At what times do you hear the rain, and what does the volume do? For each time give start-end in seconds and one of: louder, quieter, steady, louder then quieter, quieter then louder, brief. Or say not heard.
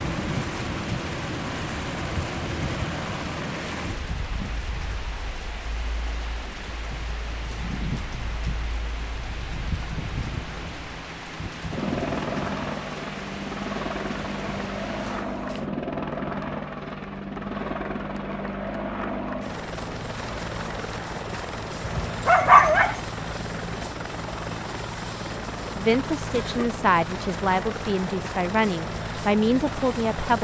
0.0-15.7 steady.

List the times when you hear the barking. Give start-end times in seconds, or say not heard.
21.8-22.9.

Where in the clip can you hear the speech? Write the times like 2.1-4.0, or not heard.
25.8-30.3.